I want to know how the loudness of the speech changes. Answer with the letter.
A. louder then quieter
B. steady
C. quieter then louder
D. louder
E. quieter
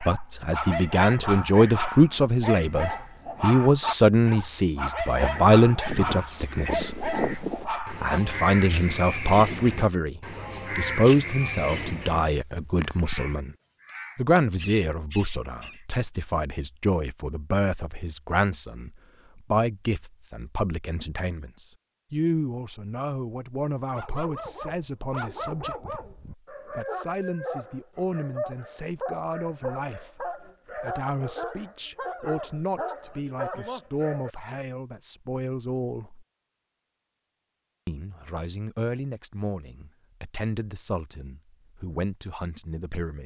E.